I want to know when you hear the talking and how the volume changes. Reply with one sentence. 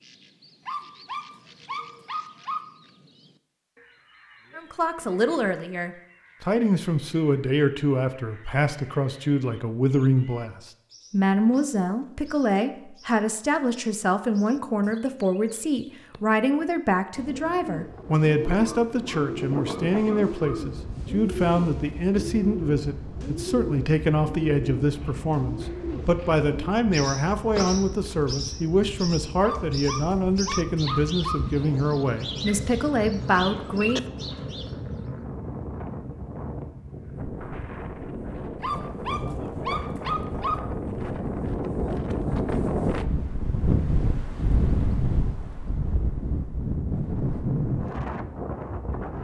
The talking can be heard from 4.5 to 34.0 s, at a steady volume.